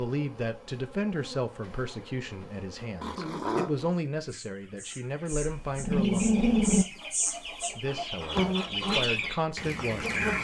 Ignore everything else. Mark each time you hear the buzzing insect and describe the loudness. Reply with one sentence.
The buzzing insect can be heard from 0.0 to 10.3 s, getting louder.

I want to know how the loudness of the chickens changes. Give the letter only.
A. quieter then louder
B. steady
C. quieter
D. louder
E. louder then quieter
D.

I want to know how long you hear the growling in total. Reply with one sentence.
The growling can be heard for 2 seconds in total.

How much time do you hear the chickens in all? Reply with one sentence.
You can hear the chickens for 6 seconds altogether.